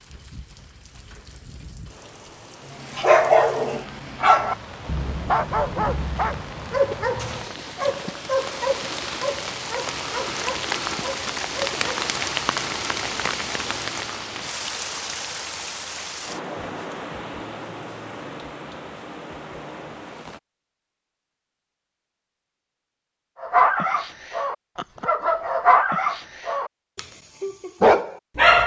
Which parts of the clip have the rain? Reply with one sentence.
You can hear the rain from 0.0 to 20.4 s.